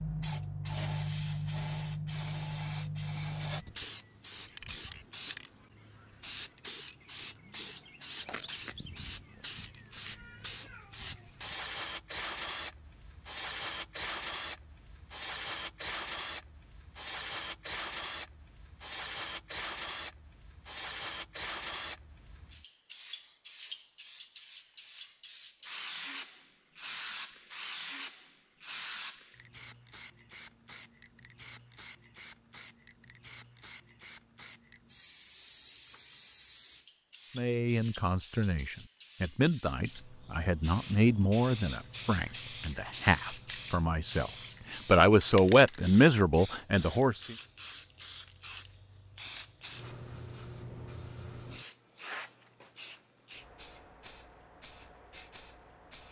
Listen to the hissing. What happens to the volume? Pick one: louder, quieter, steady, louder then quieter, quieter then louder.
quieter.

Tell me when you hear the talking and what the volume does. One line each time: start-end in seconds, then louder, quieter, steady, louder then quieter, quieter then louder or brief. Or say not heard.
37.4-47.4 louder.